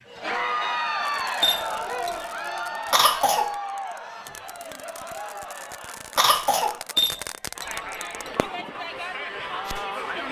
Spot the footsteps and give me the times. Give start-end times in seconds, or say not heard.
not heard.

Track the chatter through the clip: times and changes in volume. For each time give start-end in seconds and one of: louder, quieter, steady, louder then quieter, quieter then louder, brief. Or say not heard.
0.1-10.2 quieter then louder.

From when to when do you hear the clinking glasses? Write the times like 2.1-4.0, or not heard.
1.4-2.2, 7.0-8.3.